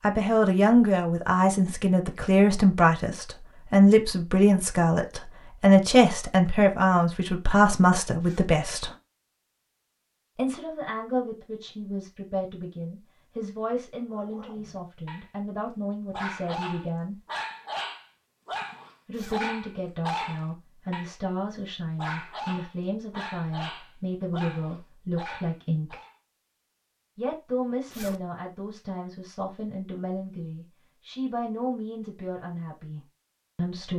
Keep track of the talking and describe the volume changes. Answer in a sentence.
The volume of the talking goes down.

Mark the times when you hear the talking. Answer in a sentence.
The talking can be heard from 0.0 to 8.9 s, from 10.3 to 17.2 s, from 19.1 to 26.0 s and from 27.1 to 33.9 s.